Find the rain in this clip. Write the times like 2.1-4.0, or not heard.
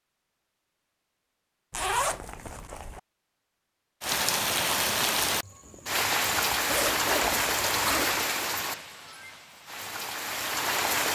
4.0-11.1.